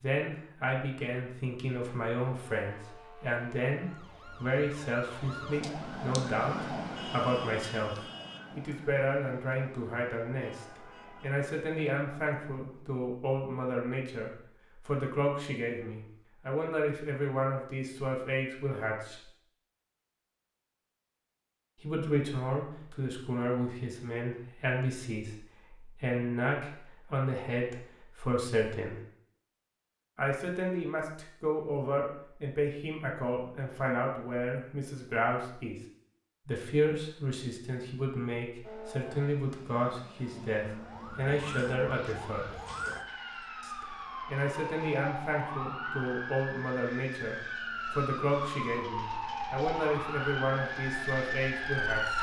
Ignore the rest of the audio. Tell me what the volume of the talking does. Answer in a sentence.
The volume of the talking stays about the same.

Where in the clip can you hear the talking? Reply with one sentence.
The talking can be heard from 0.0 to 19.3 s, from 21.8 to 28.9 s, from 30.1 to 35.8 s, from 36.5 to 42.6 s and from 43.6 to 52.1 s.